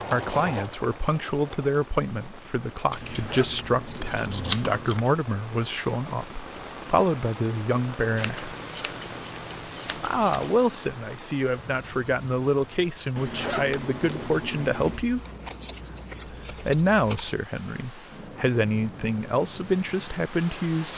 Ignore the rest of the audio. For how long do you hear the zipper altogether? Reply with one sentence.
You can hear the zipper for 4 seconds altogether.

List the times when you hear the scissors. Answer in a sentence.
You can hear the scissors from 2.9 to 5.1 s, from 8.2 to 10.6 s and from 15.0 to 17.3 s.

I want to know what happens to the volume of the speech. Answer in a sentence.
The loudness of the speech stays about the same.